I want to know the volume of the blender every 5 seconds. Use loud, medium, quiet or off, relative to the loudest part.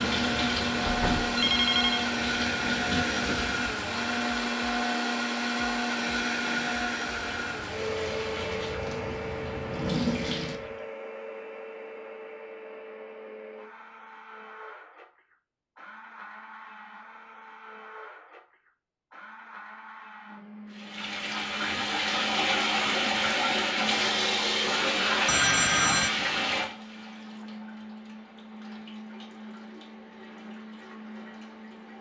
loud, loud, quiet, quiet, quiet, quiet, quiet.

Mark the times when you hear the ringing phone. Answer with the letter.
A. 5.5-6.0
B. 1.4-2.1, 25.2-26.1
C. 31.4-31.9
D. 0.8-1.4
B.